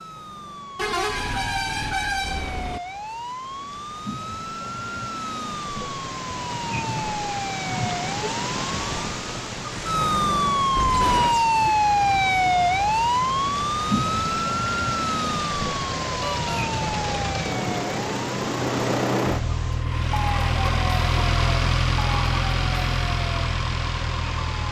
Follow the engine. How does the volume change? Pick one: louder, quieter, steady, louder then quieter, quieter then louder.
louder.